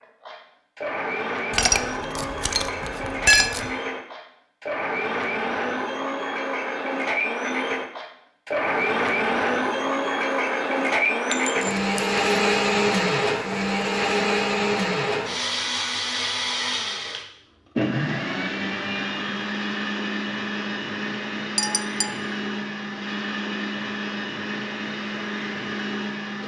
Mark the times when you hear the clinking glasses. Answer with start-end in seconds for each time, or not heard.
1.5-3.7, 11.3-12.2, 21.6-22.1.